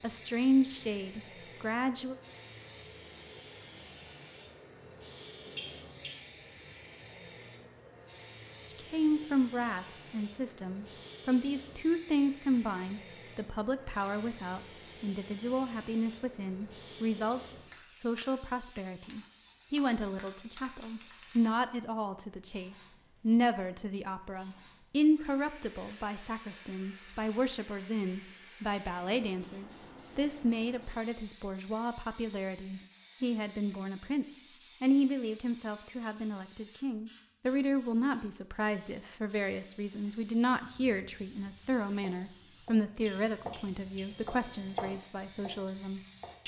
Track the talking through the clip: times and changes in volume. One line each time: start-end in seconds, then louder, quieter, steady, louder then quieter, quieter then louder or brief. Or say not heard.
0.0-2.1 brief
8.8-46.4 steady.